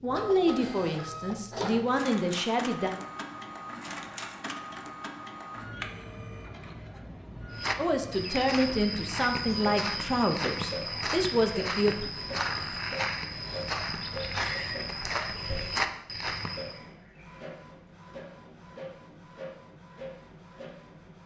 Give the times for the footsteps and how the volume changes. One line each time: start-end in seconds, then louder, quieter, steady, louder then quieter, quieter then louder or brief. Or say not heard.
7.5-16.8 steady.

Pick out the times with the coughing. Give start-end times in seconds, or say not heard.
13.8-15.3.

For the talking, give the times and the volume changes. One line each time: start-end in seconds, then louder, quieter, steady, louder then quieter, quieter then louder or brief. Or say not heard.
0.0-2.9 brief
7.8-12.1 quieter then louder.